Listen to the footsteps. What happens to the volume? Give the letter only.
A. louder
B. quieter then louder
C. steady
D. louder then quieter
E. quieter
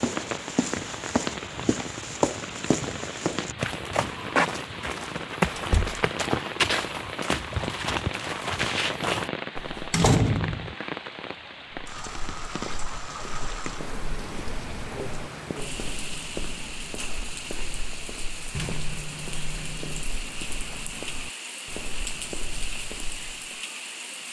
E.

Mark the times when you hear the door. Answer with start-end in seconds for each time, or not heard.
5.5-6.0, 9.9-10.8, 18.5-20.1.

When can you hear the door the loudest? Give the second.
10 s.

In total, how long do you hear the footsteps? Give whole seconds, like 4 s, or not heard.
22 s.